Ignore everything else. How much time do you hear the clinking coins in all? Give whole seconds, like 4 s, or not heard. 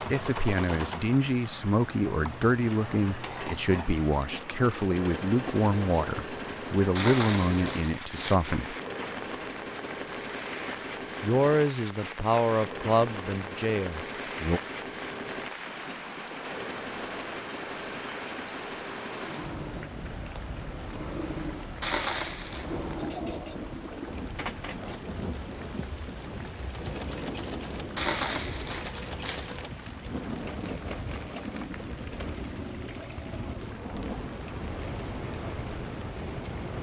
4 s.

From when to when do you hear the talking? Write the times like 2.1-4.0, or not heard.
0.1-8.8, 11.2-14.6.